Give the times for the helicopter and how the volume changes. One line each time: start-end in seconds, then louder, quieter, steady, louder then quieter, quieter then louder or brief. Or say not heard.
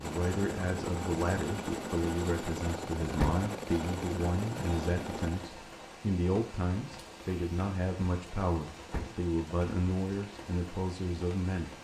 0.0-5.5 steady.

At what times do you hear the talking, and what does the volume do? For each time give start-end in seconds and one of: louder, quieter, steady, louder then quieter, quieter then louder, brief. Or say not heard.
0.0-11.7 steady.